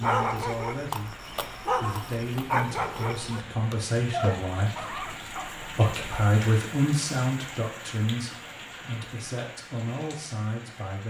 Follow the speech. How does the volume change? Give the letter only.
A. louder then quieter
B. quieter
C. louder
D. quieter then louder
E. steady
A.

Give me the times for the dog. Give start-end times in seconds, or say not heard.
0.0-5.5.